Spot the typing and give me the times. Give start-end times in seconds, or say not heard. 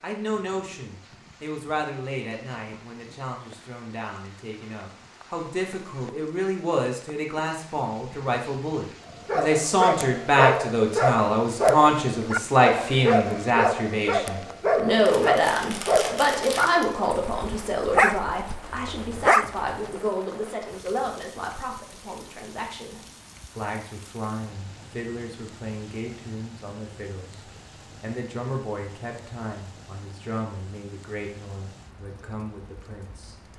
not heard.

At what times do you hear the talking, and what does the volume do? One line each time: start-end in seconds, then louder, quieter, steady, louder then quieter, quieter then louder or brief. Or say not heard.
0.0-33.4 louder then quieter.